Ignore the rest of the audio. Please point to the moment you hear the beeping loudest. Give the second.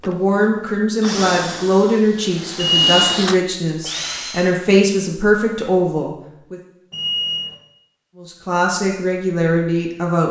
3 s.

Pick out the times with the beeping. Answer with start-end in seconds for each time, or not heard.
2.5-3.2, 6.9-7.5.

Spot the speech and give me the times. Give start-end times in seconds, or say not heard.
0.1-6.6, 8.2-10.2.